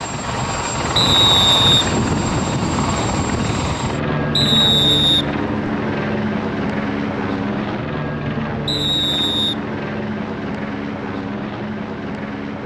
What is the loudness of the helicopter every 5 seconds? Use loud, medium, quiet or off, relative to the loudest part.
loud, loud, medium.